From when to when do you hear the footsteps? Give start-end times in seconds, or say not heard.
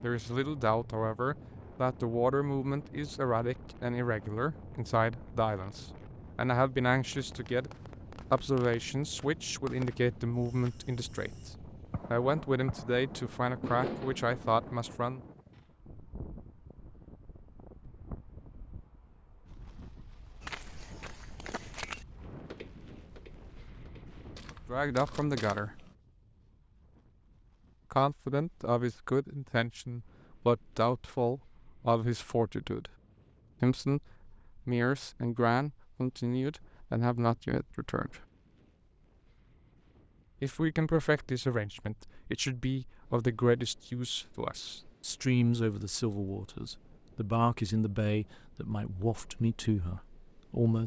20.4-25.9.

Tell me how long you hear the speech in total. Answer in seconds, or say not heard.
36 s.